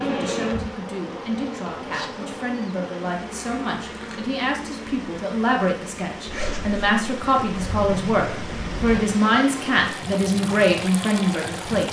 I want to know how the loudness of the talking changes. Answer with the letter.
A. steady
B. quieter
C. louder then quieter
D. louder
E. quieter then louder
D.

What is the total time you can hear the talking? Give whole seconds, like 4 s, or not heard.
12 s.